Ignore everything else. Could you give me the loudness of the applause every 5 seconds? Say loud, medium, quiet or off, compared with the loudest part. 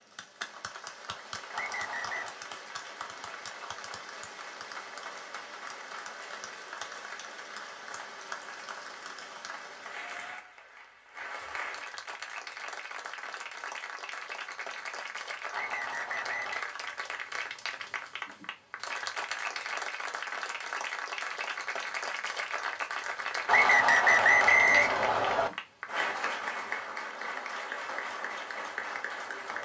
medium, medium, medium, loud, loud, loud.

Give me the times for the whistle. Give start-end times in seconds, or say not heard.
1.5-2.3, 15.5-16.7, 23.4-25.5.